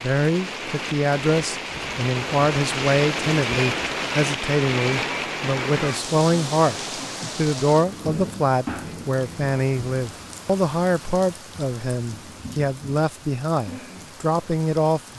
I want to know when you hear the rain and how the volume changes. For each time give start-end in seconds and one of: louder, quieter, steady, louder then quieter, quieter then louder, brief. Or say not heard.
0.0-15.1 quieter.